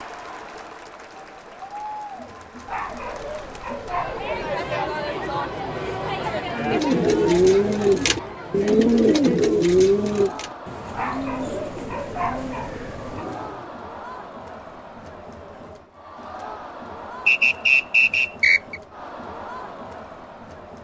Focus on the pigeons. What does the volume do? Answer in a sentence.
The loudness of the pigeons goes down.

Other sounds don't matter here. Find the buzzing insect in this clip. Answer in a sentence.
You can't hear the buzzing insect here.